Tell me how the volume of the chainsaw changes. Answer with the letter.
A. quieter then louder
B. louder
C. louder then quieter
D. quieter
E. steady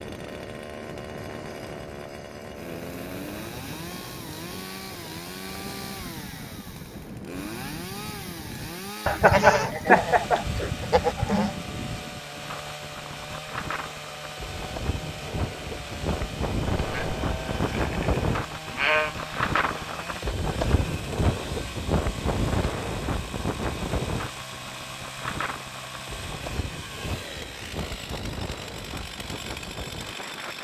E.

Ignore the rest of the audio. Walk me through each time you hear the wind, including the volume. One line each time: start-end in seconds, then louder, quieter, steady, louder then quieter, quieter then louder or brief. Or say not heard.
0.0-30.5 louder then quieter.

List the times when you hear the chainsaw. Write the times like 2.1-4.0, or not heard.
0.0-30.5.